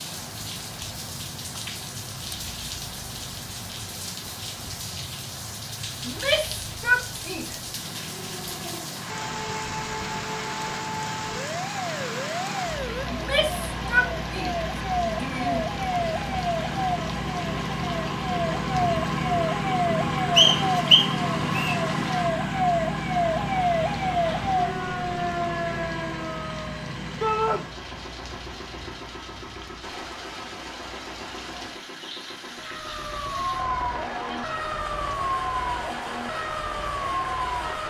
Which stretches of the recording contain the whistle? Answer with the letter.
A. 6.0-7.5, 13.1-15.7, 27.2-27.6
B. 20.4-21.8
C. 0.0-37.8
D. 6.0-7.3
B.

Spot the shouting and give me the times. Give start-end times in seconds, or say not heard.
6.0-7.5, 13.1-15.7, 27.2-27.6.